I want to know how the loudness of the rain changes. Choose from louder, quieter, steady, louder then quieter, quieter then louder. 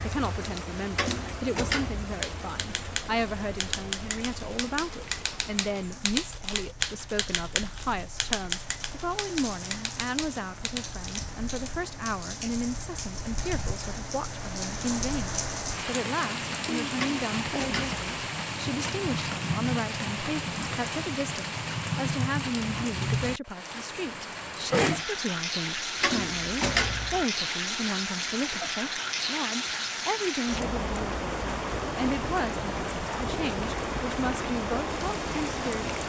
louder.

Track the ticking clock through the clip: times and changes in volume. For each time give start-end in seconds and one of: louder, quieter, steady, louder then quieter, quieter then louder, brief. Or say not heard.
not heard.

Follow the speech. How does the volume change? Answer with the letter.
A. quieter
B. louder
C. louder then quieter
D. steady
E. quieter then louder
D.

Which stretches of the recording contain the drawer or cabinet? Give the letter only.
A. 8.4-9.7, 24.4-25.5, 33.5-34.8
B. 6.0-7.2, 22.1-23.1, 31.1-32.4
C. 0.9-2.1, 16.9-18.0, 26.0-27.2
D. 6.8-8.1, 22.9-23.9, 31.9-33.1
C.